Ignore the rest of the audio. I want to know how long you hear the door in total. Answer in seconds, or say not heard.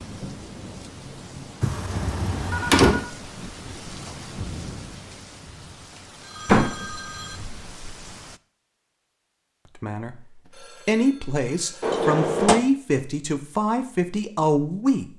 3 s.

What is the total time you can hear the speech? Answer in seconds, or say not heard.
5 s.